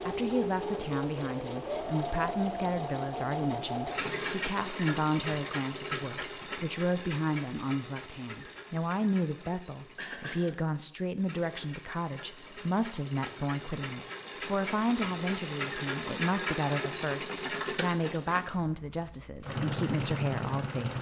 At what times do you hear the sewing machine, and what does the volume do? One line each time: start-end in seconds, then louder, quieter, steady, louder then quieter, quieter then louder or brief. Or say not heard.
0.0-20.9 quieter then louder.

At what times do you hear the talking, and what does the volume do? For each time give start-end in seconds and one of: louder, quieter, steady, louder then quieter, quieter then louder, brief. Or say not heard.
0.1-20.9 steady.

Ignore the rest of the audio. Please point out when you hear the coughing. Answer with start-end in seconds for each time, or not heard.
9.9-10.5.